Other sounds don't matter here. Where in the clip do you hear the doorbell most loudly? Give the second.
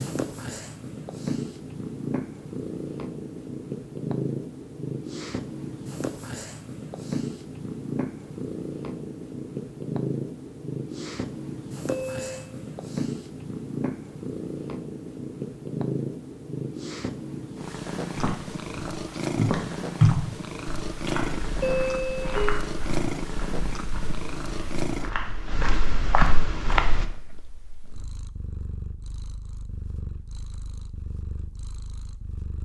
22 s.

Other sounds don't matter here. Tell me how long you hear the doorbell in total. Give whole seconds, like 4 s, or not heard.
2 s.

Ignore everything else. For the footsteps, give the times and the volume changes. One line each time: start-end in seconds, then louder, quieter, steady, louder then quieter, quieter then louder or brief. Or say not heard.
18.1-27.1 quieter then louder.